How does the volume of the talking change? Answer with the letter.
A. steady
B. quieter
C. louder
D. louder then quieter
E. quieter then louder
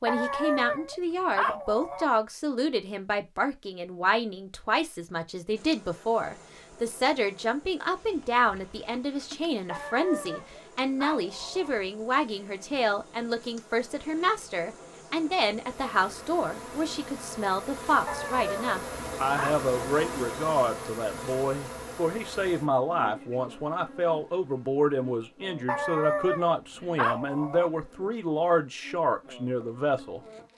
A.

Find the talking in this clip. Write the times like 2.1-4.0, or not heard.
0.0-30.2.